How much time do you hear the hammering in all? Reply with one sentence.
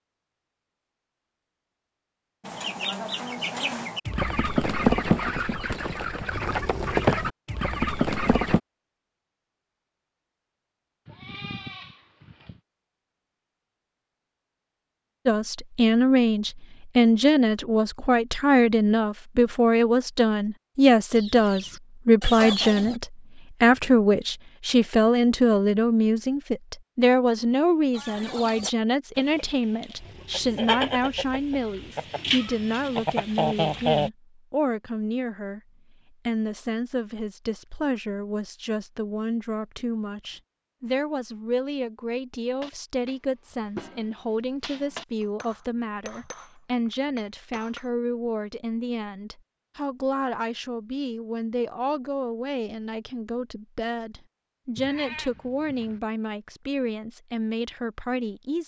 You can hear the hammering for 5 seconds altogether.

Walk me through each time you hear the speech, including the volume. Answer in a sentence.
The speech can be heard from 15.2 to 58.6 s, getting quieter.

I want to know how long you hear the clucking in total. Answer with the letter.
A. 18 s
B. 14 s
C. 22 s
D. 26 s
B.